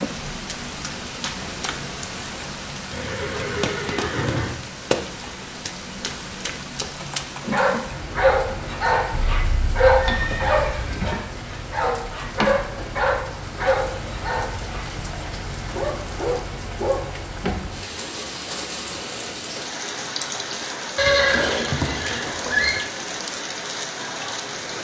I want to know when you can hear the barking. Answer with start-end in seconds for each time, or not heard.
7.4-17.1.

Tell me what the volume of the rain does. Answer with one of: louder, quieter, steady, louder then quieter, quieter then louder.
steady.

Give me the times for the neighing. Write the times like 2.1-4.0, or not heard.
2.9-4.6, 9.1-11.2, 20.9-22.8.